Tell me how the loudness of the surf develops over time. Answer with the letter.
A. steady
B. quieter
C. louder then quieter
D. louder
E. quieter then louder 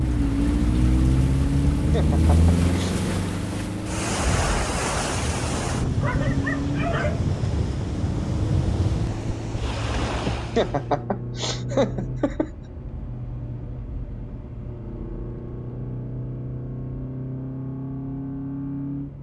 D.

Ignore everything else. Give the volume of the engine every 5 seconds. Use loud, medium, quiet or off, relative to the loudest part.
loud, medium, medium, medium.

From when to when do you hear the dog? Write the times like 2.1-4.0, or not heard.
6.0-7.2.